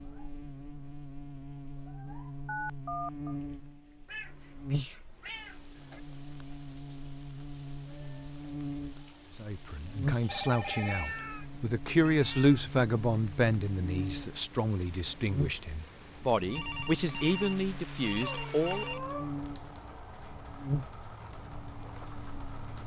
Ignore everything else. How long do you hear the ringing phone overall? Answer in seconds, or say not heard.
4 s.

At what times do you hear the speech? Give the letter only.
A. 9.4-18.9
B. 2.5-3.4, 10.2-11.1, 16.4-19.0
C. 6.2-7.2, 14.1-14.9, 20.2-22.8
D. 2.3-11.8
A.